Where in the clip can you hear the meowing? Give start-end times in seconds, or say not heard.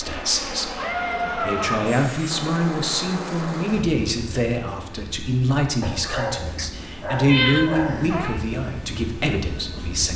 0.8-1.8, 6.5-8.4.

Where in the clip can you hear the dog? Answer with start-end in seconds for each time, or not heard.
5.8-8.3.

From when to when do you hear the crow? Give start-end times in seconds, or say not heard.
not heard.